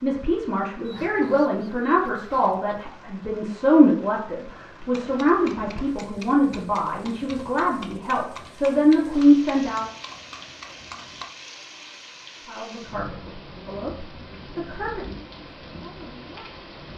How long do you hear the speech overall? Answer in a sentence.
You can hear the speech for 14 seconds altogether.